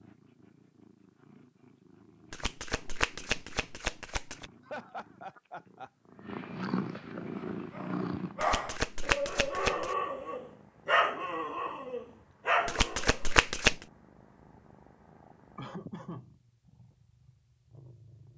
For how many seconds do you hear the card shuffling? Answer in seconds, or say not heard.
5 s.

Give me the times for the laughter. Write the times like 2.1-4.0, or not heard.
4.7-5.9, 15.6-16.2.